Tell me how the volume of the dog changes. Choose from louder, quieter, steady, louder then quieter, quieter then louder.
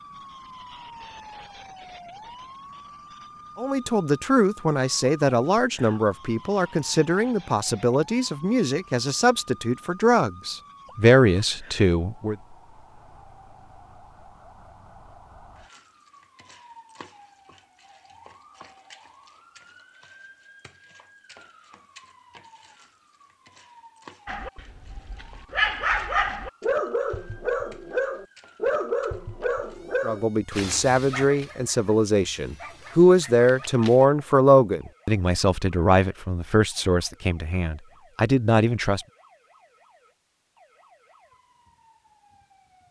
quieter.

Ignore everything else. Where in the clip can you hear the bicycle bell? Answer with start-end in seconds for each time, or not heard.
not heard.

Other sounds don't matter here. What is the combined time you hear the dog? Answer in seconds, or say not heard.
10 s.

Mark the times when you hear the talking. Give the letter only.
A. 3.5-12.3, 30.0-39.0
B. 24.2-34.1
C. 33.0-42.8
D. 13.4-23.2
A.